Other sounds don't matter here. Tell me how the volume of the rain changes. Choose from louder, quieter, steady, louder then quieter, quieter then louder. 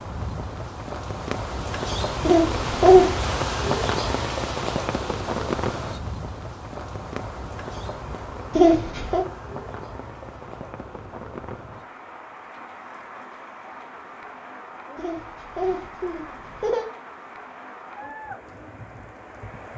quieter.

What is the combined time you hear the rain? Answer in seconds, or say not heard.
20 s.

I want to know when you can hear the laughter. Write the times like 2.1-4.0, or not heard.
2.2-3.1, 8.6-9.2, 14.9-16.9.